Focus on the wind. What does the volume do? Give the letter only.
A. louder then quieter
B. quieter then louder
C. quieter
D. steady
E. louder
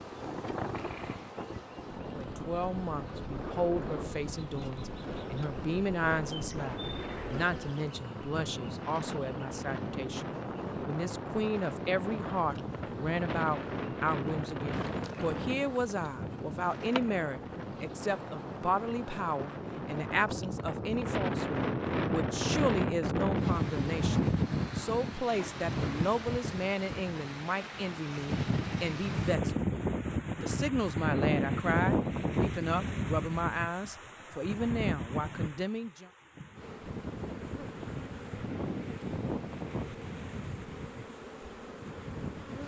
A.